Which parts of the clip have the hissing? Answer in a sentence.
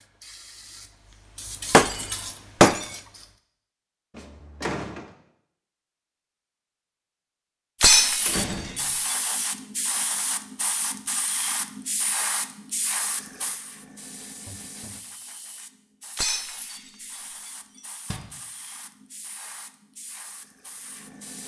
You can hear the hissing from 0.0 to 3.4 s and from 7.8 to 21.4 s.